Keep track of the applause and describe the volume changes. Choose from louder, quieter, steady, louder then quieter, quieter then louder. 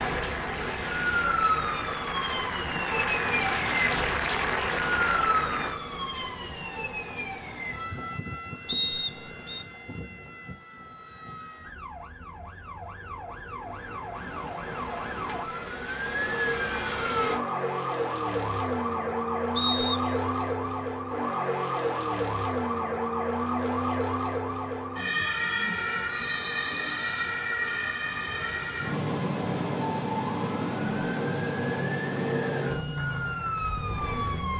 louder.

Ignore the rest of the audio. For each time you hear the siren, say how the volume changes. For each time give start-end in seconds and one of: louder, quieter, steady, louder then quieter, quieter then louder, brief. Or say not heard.
0.0-34.5 quieter then louder.